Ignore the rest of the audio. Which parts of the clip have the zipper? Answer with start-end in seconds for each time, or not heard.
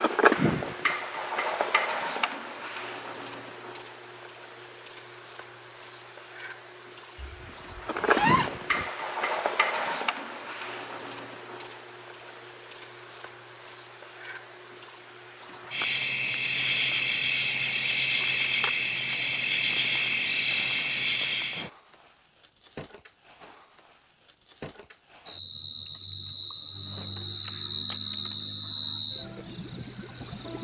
7.2-8.8.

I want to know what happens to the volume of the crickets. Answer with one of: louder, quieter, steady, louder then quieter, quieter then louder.
steady.